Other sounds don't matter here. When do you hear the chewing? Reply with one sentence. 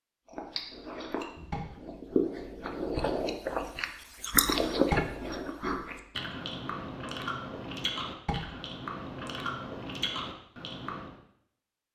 You can hear the chewing from 0.2 to 11.2 s.